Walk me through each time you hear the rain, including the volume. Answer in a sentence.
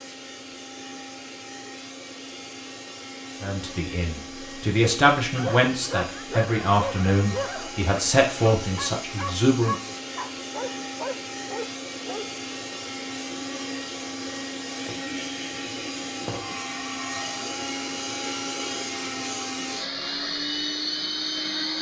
You can't hear the rain here.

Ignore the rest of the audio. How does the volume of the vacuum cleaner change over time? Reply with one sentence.
The volume of the vacuum cleaner goes up.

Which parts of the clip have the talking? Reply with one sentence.
You can hear the talking from 3.4 to 9.8 s.